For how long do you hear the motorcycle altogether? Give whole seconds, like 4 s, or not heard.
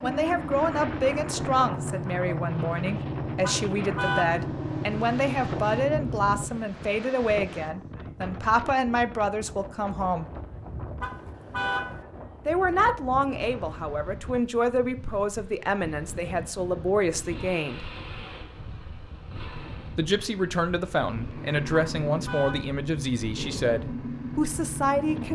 15 s.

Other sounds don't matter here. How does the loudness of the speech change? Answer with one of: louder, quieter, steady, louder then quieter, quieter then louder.
steady.